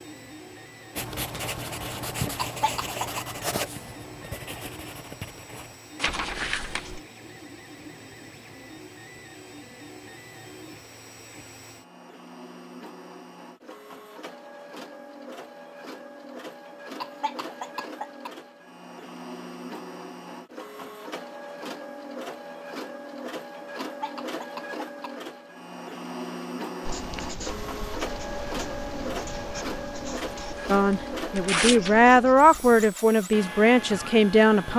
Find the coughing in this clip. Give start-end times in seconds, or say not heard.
2.4-3.2, 17.0-18.3, 23.8-25.1.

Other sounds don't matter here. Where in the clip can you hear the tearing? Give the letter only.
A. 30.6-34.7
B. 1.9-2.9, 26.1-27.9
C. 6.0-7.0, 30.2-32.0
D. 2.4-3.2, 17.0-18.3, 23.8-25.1
C.